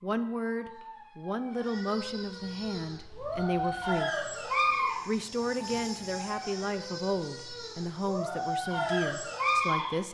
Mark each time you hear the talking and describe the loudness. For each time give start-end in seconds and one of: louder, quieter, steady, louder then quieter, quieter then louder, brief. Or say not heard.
0.0-10.0 steady.